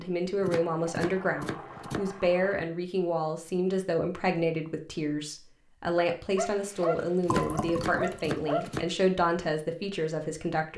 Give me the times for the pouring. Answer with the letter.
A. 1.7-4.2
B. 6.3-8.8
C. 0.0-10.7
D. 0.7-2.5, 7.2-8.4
D.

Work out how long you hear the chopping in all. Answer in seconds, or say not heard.
3 s.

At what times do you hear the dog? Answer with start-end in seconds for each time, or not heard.
6.3-8.8.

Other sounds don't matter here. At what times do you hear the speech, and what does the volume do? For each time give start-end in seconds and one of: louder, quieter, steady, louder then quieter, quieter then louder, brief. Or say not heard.
0.0-10.7 steady.